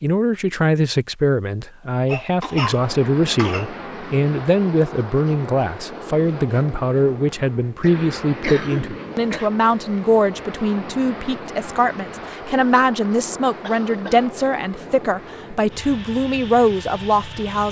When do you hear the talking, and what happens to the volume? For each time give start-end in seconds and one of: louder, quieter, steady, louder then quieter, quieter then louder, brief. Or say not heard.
0.0-17.6 steady.